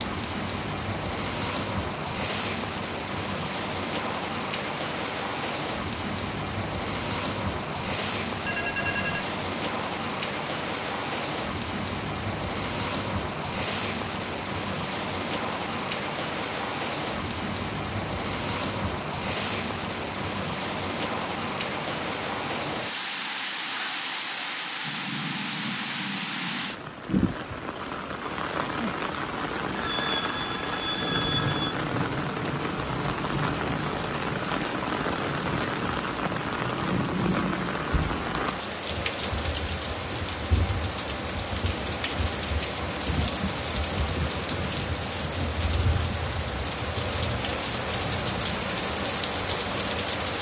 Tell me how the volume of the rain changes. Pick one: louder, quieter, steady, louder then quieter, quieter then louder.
steady.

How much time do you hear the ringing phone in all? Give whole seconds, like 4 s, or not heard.
3 s.